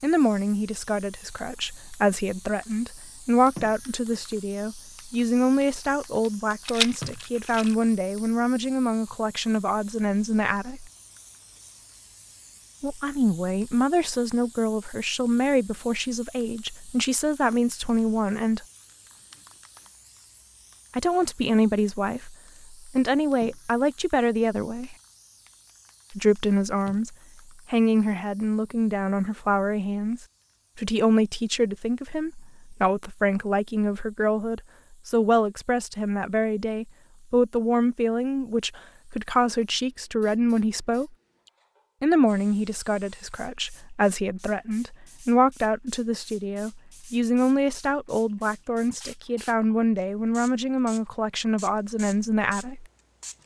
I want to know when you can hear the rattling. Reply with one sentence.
The rattling can be heard from 6.7 to 7.8 s.